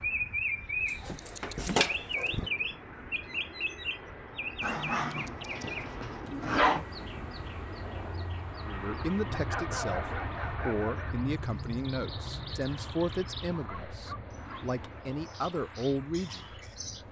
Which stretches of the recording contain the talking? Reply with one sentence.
You can hear the talking from 8.7 to 16.6 s.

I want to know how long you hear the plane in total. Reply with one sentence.
The plane can be heard for 17 seconds in total.